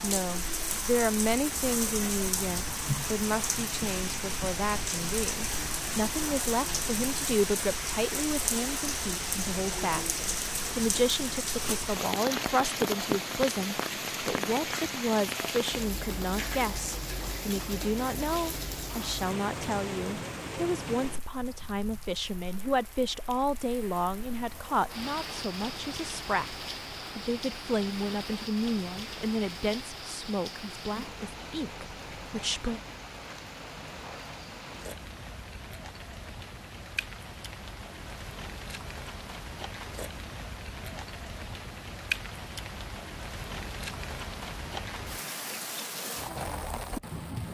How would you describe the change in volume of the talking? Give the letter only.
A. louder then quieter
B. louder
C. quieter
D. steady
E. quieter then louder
D.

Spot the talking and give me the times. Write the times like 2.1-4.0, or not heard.
0.0-26.6, 27.1-32.8.